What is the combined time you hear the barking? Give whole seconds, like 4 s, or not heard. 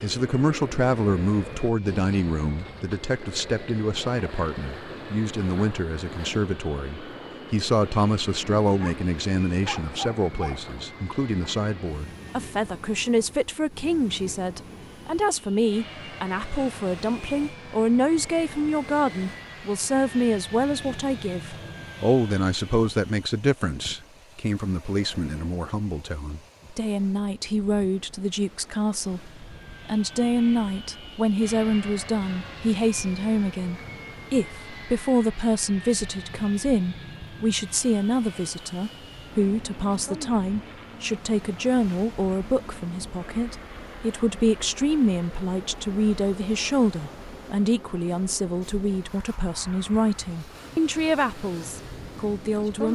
2 s.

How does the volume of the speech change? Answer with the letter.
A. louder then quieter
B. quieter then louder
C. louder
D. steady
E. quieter
D.